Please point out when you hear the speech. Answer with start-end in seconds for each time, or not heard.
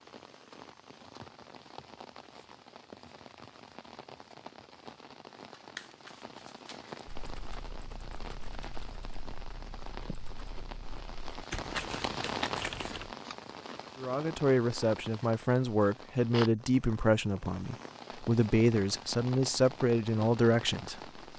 13.9-21.2.